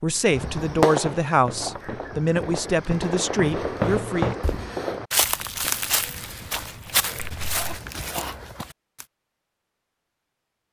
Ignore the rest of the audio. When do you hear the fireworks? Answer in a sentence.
The fireworks can be heard from 0.3 to 7.6 s.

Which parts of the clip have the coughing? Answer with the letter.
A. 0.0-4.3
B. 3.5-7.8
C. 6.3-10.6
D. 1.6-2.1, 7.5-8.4
D.